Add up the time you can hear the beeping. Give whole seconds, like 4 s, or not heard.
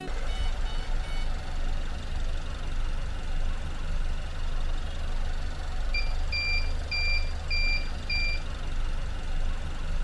4 s.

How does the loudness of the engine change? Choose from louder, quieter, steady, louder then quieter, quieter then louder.
steady.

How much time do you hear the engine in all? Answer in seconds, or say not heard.
10 s.